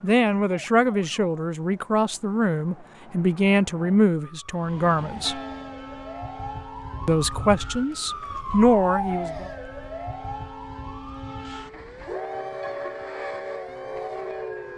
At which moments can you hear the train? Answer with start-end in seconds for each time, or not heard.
4.5-14.7.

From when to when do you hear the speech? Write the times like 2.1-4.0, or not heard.
0.0-5.4, 7.0-9.4.